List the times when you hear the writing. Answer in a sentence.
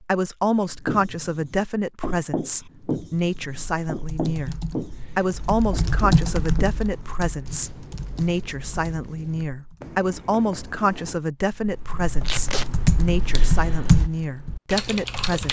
The writing can be heard from 0.8 to 11.2 s.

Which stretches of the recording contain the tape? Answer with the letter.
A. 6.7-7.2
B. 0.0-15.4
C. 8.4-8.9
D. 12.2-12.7
D.